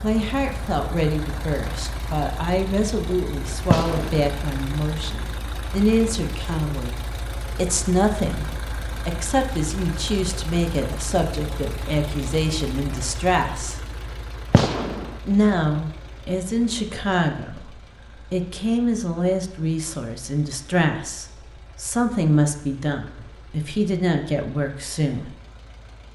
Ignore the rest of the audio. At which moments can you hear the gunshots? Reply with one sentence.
The gunshots can be heard from 3.7 to 4.3 s and from 14.5 to 15.2 s.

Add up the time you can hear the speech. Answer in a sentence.
You can hear the speech for 22 seconds altogether.